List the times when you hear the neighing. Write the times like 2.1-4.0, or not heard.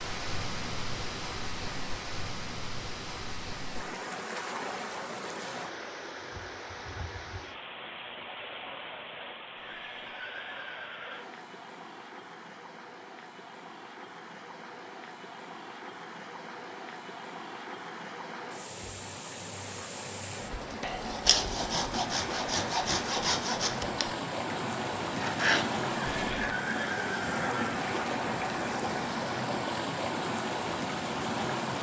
9.6-11.2, 26.1-27.8.